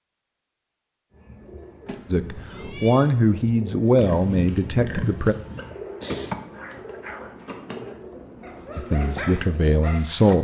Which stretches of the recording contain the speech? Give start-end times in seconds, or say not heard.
2.1-5.3, 8.8-10.3.